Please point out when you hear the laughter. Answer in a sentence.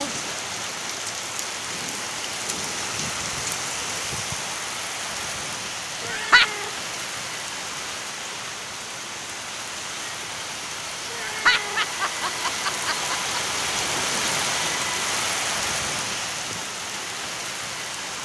You can hear the laughter from 6.0 to 6.5 s and from 11.2 to 13.6 s.